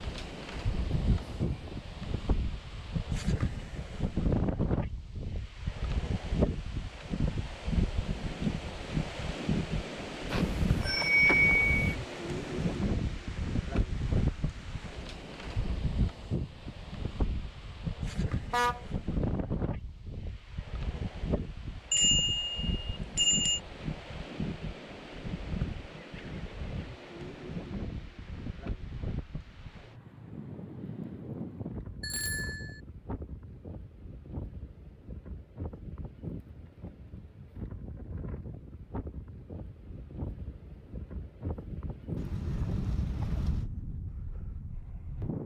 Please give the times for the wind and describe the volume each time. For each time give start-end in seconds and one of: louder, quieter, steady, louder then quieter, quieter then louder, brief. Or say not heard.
0.0-45.4 quieter.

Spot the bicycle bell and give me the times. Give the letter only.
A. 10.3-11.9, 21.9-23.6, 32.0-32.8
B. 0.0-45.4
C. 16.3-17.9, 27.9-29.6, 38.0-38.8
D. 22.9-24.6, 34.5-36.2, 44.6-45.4
A.